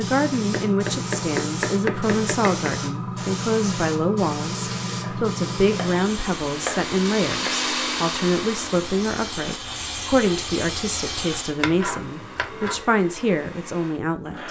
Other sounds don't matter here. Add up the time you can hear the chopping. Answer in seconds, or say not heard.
6 s.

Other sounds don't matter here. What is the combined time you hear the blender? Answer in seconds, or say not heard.
9 s.